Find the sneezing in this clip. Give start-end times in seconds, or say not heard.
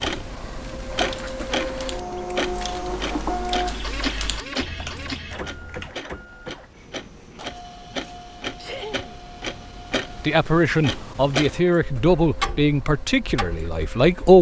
8.6-9.2.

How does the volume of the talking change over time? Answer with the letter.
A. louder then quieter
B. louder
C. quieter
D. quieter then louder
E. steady
C.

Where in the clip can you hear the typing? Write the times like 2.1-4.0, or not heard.
0.6-6.0.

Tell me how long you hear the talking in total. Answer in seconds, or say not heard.
4 s.